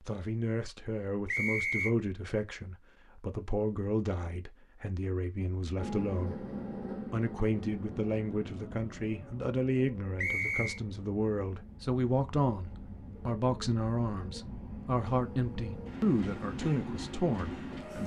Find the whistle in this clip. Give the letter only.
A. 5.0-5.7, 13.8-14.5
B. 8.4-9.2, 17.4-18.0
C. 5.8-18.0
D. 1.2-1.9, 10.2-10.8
D.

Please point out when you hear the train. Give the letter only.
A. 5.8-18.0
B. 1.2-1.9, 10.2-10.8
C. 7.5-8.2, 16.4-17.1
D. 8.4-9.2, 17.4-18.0
A.